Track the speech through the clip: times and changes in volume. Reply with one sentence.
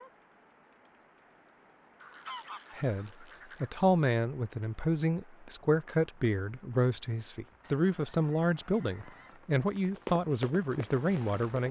You can hear the speech from 2.7 to 11.6 s, at a steady volume.